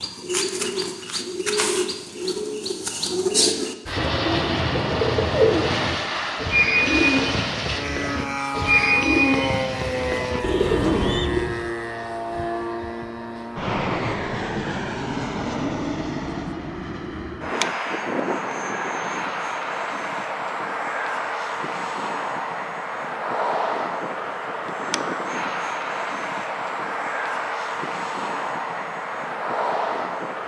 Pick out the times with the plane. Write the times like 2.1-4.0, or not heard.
3.9-30.4.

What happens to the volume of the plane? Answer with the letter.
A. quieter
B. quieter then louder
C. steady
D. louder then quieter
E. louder
C.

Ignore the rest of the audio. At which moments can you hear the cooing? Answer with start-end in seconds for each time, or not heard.
0.0-11.5.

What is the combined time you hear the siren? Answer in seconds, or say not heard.
not heard.